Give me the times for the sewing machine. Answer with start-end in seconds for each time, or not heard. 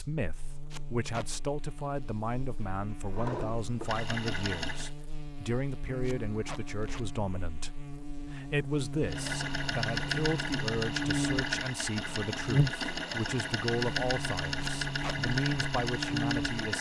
3.1-4.9, 9.0-16.7.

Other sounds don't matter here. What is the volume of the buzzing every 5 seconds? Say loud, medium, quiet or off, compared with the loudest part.
quiet, medium, loud, loud.